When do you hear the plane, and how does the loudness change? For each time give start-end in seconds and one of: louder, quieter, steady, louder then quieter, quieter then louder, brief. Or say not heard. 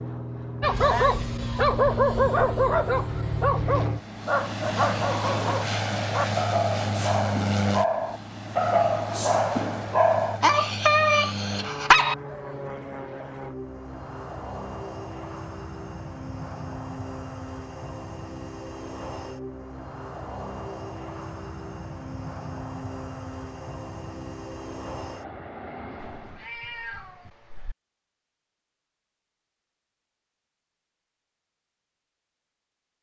0.0-26.5 quieter.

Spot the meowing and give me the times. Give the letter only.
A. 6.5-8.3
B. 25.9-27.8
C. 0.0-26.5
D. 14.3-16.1
B.